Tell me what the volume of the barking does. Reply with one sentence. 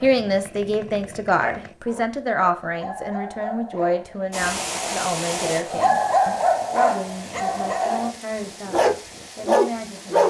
The volume of the barking goes up.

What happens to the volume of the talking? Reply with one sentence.
The volume of the talking goes down.